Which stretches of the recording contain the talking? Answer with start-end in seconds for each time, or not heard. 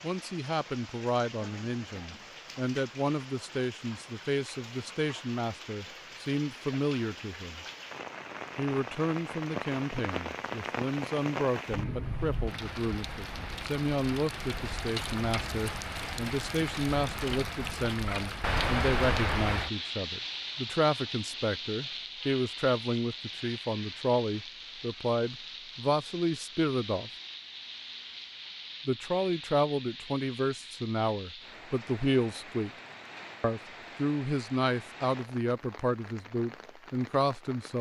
0.0-7.7, 8.6-27.1, 28.9-32.7, 33.4-37.7.